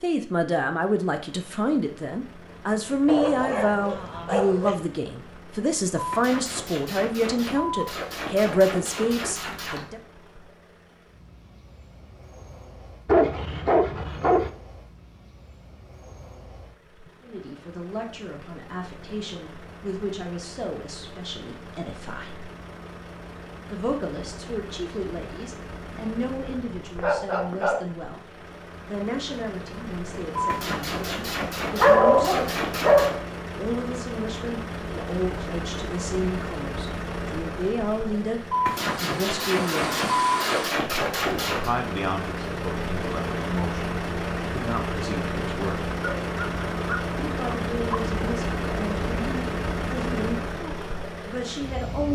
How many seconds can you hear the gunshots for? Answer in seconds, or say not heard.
10 s.